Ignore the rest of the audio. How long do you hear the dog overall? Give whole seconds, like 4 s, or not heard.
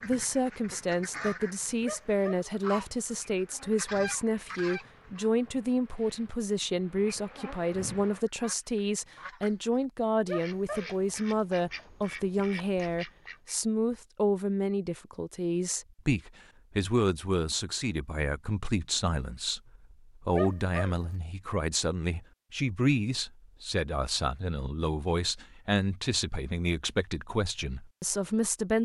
2 s.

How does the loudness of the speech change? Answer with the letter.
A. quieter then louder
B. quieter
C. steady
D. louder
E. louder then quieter
C.